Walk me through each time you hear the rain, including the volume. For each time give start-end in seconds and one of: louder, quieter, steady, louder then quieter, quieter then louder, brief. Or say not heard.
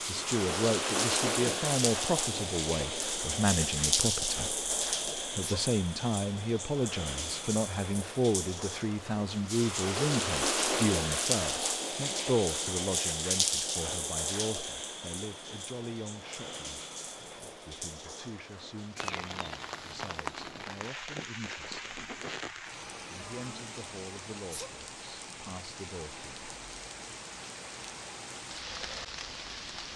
0.0-29.9 quieter.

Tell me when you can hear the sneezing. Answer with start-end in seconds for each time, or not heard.
5.2-5.7, 24.4-24.8.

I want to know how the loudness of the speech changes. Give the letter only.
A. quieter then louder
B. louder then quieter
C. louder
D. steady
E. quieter
E.